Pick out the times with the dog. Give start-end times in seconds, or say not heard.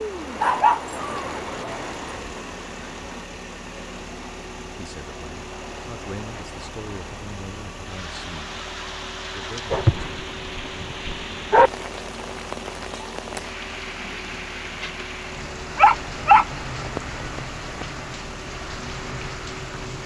0.4-1.8, 9.7-11.7, 15.8-17.9.